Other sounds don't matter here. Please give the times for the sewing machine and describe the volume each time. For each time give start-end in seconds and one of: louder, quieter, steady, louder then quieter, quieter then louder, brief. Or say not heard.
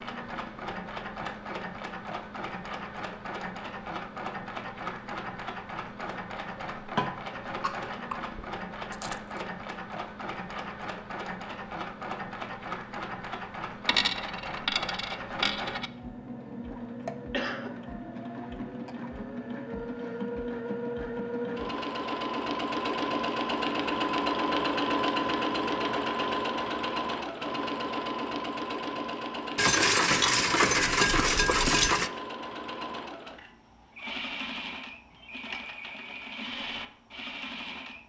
0.0-38.0 louder then quieter.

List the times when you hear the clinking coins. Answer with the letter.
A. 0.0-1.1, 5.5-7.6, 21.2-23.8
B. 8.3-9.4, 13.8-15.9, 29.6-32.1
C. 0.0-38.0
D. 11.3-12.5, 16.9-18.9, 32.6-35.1
B.